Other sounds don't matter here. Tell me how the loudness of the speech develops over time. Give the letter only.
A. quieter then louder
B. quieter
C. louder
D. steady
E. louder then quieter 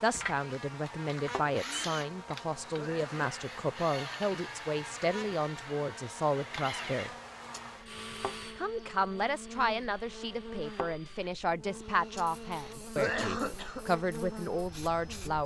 D.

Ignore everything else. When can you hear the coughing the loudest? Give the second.
13 s.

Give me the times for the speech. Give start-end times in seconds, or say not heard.
0.0-7.1, 8.6-15.4.